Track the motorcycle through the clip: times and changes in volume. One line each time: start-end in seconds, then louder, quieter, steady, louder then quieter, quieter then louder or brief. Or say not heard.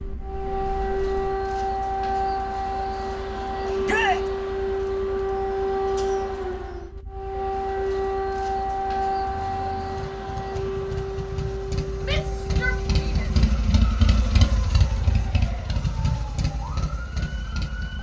0.0-17.9 quieter then louder.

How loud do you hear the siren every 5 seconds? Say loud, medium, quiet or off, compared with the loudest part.
loud, loud, medium, quiet.